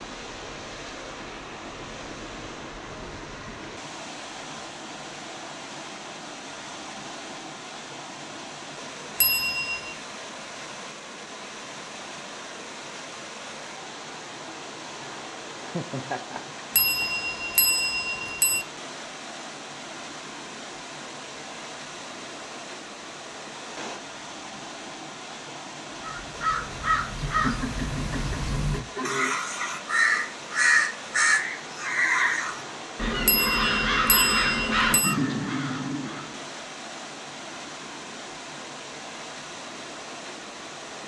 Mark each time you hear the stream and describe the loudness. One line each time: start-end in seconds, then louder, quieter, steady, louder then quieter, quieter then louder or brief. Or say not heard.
0.0-41.0 steady.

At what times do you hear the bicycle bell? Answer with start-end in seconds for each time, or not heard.
9.2-9.9, 16.8-18.6, 33.2-35.1.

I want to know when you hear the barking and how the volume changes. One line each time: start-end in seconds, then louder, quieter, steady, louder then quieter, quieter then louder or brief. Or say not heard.
not heard.